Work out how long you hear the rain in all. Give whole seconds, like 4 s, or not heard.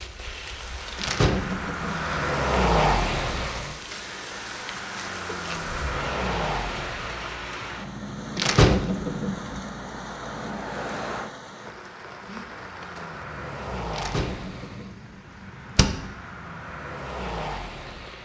18 s.